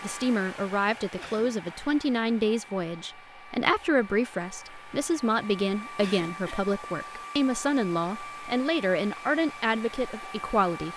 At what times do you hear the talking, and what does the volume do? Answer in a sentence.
You can hear the talking from 0.0 to 10.9 s, at a steady volume.